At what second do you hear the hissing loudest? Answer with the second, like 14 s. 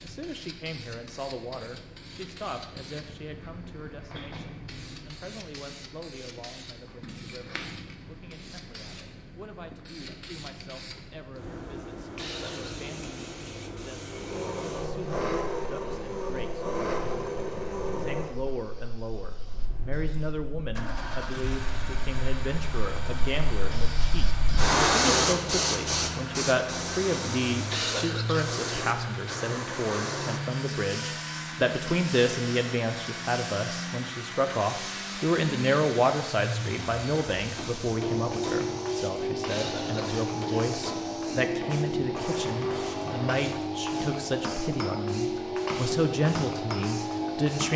25 s.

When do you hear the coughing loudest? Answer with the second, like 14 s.
28 s.